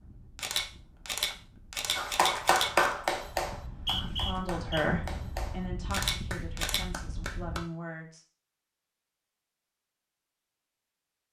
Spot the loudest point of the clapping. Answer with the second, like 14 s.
3 s.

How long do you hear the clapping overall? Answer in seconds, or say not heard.
6 s.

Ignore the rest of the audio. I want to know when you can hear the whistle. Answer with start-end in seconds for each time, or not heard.
3.5-4.8.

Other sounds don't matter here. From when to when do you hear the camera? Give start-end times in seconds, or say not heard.
0.3-2.9, 5.9-6.8.